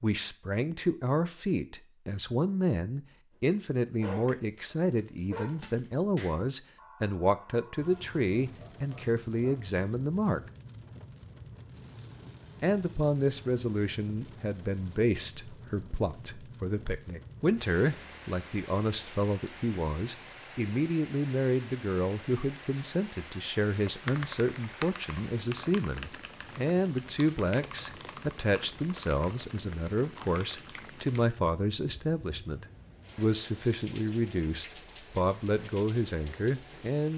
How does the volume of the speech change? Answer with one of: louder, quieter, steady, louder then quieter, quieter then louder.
steady.